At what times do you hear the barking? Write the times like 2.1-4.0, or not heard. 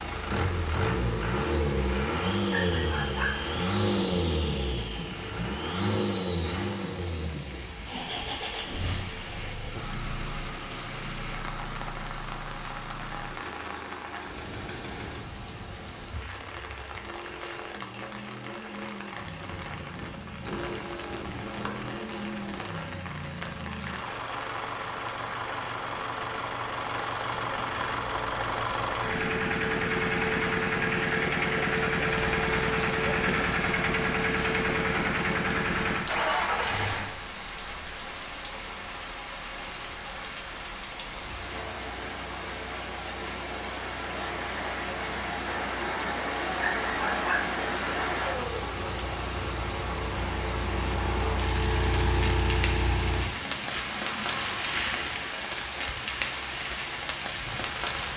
2.5-3.5, 46.6-47.5.